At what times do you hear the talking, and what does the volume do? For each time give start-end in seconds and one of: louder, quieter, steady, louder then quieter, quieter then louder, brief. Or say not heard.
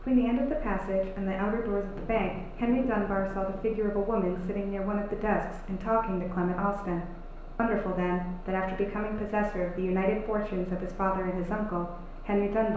0.0-12.7 steady.